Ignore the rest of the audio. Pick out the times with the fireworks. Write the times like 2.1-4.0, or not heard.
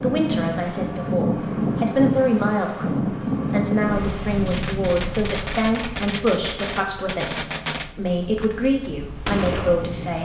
4.4-9.8.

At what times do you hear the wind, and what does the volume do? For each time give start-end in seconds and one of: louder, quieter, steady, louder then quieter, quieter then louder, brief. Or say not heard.
0.0-10.1 quieter.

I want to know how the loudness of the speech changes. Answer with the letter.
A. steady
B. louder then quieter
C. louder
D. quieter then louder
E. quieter
A.